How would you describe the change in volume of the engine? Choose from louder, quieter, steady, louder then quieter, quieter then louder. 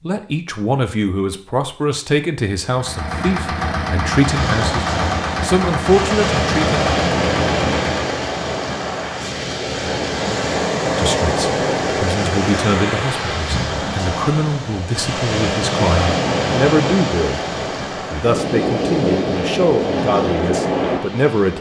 steady.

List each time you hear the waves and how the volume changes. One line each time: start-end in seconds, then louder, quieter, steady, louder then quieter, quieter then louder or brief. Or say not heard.
4.2-21.5 steady.